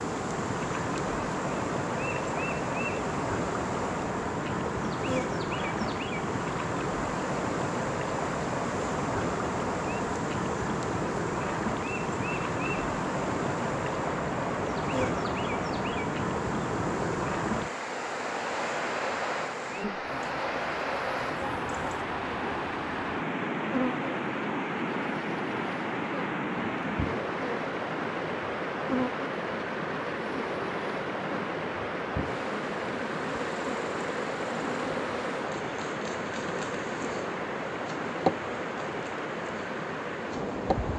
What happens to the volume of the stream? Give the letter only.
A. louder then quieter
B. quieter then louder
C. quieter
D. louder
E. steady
E.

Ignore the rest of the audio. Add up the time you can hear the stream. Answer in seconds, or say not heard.
41 s.